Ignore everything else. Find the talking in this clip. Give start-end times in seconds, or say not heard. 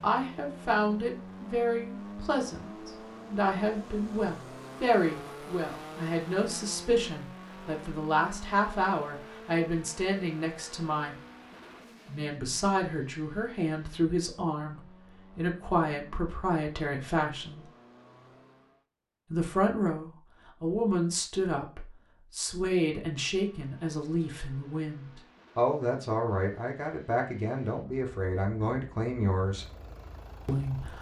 0.0-11.2, 12.1-17.6, 19.3-29.6, 30.4-30.9.